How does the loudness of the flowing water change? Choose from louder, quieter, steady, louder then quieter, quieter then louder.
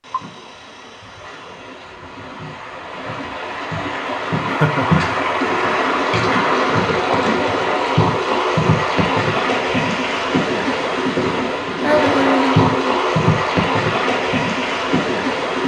louder.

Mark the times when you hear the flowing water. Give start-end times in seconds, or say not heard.
0.0-15.6.